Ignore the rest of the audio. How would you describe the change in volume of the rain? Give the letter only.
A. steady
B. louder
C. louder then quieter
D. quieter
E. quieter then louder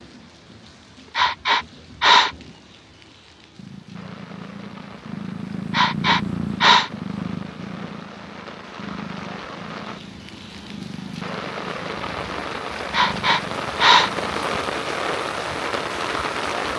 B.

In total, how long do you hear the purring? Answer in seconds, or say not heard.
11 s.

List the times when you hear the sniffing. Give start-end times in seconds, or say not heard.
1.1-2.3, 5.7-6.9, 12.9-14.1.